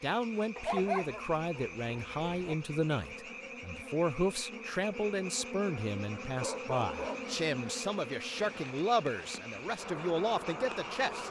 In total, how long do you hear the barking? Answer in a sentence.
You can hear the barking for 3 seconds altogether.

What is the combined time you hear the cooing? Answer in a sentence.
You can't hear the cooing here.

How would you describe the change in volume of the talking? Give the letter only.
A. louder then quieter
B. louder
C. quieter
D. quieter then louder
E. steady
E.